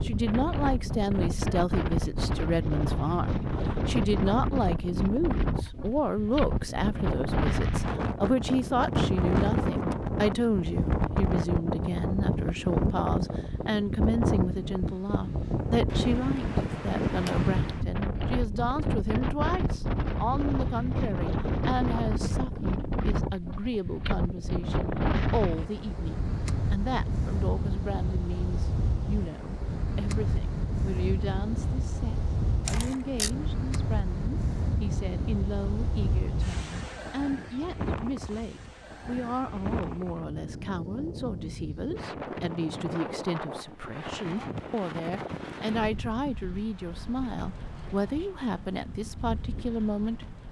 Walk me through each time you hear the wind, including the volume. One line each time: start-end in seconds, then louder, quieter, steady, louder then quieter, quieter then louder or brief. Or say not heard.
0.0-50.4 quieter.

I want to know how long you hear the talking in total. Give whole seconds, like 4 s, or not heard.
50 s.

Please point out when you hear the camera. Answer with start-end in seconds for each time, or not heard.
32.6-33.3.